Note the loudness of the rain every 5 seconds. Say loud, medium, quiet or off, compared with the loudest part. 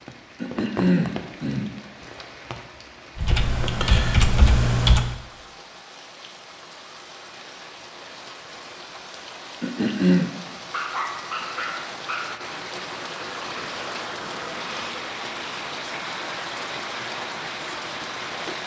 medium, medium, loud, loud.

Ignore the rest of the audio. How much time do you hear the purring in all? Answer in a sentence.
The purring can't be heard in this clip.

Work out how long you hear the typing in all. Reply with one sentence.
The typing can be heard for 2 seconds in total.